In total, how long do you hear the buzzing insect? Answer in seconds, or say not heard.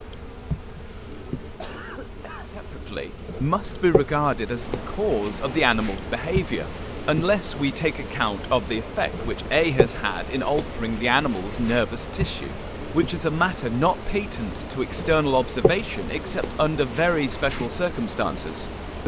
19 s.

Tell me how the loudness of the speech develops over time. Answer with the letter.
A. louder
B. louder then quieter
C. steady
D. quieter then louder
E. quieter
C.